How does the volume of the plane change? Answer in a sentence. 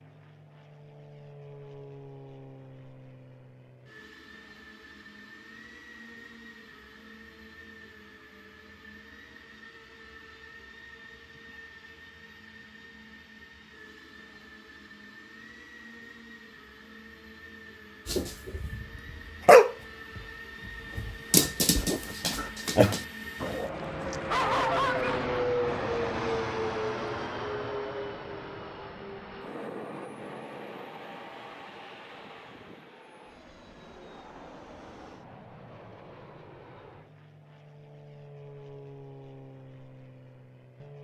The loudness of the plane goes up, then down.